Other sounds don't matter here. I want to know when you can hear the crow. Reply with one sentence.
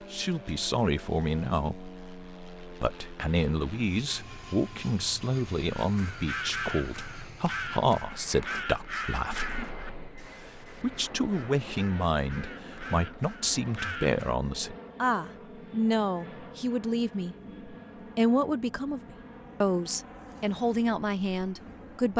You can hear the crow from 5.7 to 14.3 s.